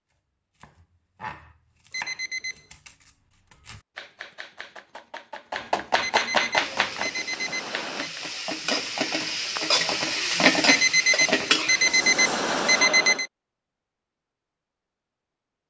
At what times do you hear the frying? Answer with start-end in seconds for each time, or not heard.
6.5-12.8.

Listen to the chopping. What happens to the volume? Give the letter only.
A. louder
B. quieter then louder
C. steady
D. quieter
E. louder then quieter
B.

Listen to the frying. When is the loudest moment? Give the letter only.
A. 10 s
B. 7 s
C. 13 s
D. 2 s
A.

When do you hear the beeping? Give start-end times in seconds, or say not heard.
1.9-2.6, 6.0-8.1, 10.7-13.2.